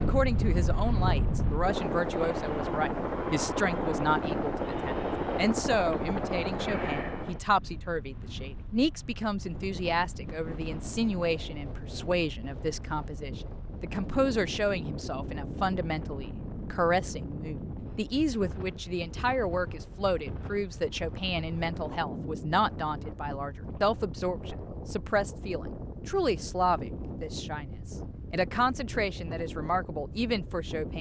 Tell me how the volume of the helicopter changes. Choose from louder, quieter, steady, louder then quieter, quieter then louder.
steady.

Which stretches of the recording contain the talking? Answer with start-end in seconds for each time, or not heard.
0.0-30.9.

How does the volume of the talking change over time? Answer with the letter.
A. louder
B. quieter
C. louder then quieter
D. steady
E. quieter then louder
D.